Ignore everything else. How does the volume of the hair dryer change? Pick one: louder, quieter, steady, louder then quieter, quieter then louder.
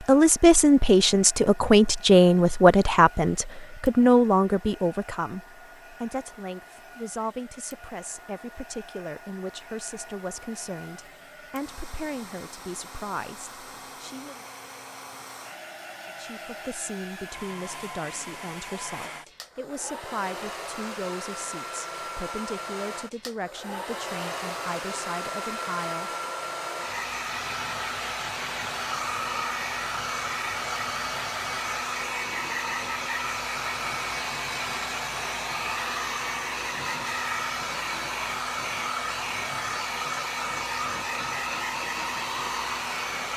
louder.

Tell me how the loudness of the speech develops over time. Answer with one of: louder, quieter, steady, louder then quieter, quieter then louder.
quieter.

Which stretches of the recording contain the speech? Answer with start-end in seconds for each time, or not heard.
0.0-14.4, 16.1-26.1.